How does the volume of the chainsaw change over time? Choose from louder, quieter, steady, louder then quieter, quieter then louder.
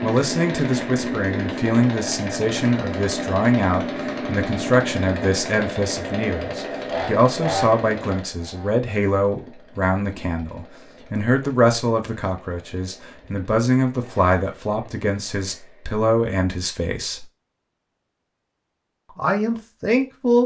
quieter.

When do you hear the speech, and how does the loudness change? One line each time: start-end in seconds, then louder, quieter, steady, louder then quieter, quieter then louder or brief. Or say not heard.
0.0-17.2 steady
19.1-20.4 brief.